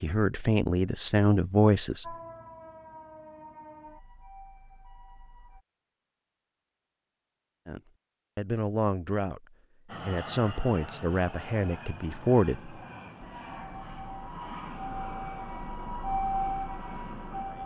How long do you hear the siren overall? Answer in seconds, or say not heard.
8 s.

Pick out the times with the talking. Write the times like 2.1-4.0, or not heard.
0.0-2.1, 7.7-9.4, 10.0-12.8.